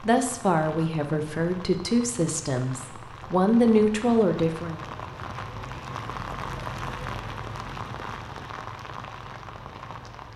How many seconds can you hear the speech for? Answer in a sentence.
The speech can be heard for 5 seconds in total.